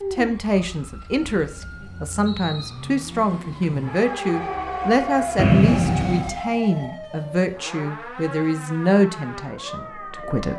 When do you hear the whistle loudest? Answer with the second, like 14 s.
6 s.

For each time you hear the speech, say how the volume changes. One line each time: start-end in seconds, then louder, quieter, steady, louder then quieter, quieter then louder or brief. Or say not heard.
0.1-10.5 steady.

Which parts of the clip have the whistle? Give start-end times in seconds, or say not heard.
1.2-2.8, 5.3-6.4.